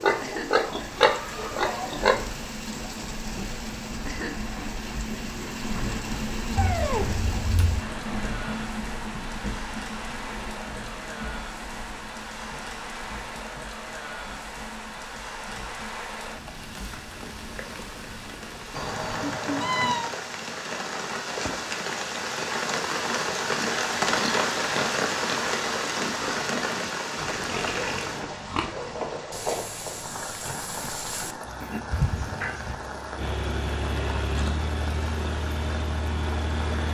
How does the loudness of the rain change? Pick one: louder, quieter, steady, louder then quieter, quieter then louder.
louder then quieter.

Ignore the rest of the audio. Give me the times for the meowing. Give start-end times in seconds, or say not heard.
6.5-7.8, 18.8-20.1, 31.9-32.8.